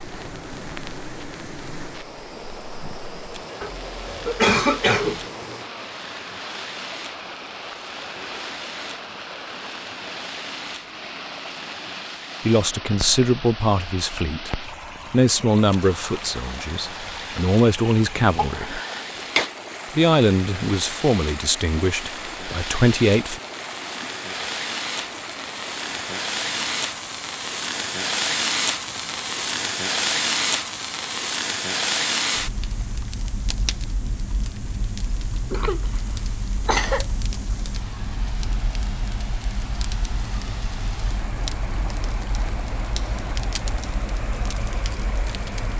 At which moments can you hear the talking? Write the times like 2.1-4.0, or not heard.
12.4-18.8, 19.9-23.4.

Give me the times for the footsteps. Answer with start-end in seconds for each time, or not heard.
not heard.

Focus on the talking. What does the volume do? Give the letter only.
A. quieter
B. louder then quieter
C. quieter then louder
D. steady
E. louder
D.